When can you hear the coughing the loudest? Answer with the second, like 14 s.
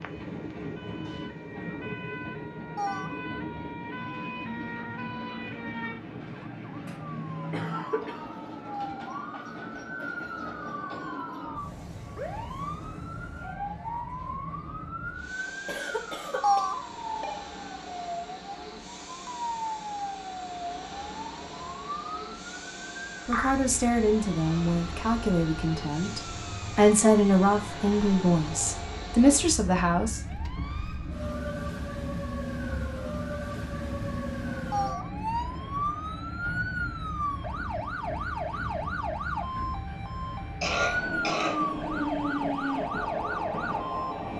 41 s.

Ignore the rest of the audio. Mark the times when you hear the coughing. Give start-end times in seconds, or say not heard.
6.3-8.2, 15.7-16.6, 40.6-41.8.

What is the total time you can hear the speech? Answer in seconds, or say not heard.
7 s.